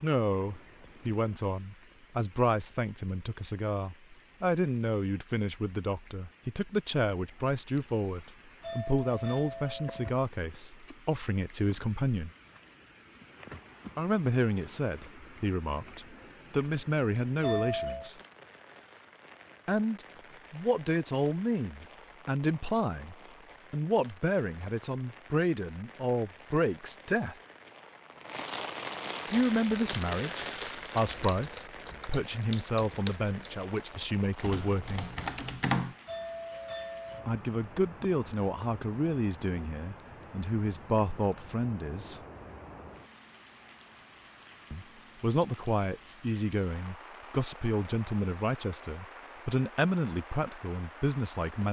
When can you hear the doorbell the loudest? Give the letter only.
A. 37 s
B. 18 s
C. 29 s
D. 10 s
B.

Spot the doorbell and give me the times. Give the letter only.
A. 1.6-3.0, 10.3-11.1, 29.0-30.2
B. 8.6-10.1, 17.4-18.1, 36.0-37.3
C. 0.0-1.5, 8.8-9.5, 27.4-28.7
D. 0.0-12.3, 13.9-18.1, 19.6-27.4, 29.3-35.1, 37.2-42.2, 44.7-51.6
B.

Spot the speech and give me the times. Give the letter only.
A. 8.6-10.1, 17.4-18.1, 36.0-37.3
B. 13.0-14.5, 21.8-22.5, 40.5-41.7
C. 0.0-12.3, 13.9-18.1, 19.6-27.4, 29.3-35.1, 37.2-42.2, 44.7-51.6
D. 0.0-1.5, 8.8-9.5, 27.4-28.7
C.